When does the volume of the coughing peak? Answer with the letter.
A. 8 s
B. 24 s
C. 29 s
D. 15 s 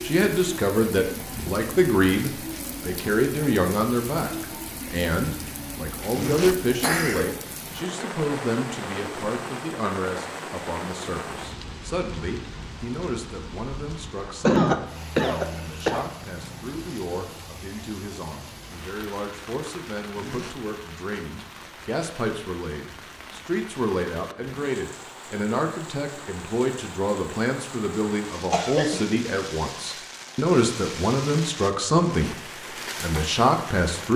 D.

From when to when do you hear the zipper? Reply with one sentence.
The zipper can be heard from 6.1 to 6.6 s, from 20.1 to 20.6 s and from 31.9 to 32.4 s.